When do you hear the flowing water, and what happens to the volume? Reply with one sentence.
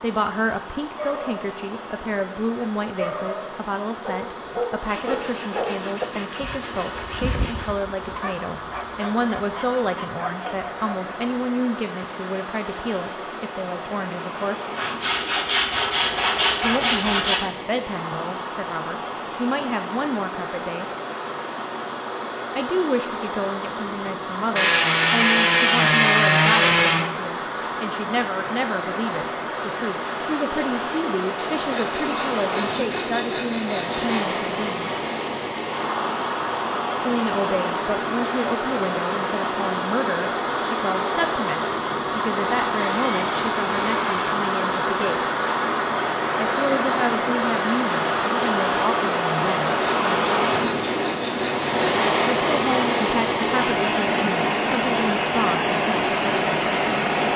You can hear the flowing water from 0.0 to 57.3 s, getting louder.